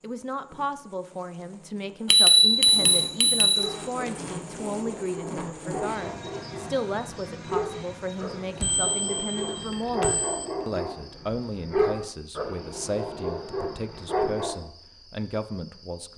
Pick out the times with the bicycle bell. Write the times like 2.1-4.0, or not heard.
2.1-3.7, 8.6-10.4.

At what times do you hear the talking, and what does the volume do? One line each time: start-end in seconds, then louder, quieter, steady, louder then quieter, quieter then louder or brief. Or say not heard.
0.0-16.1 steady.